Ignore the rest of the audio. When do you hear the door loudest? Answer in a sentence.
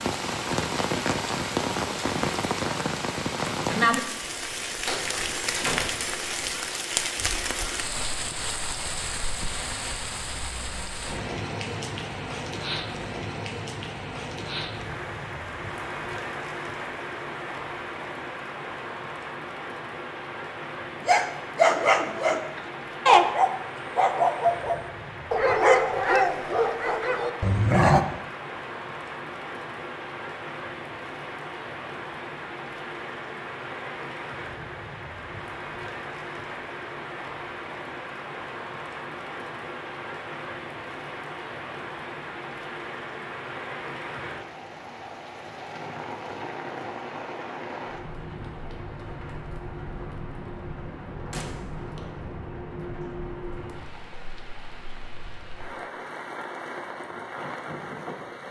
The loudest moment of the door is at 6 seconds.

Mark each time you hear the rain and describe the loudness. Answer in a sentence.
You can hear the rain from 0.0 to 58.4 s, getting quieter.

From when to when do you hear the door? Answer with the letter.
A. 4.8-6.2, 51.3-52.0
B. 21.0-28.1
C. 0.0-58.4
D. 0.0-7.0
A.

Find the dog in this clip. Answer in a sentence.
The dog can be heard from 21.0 to 28.1 s.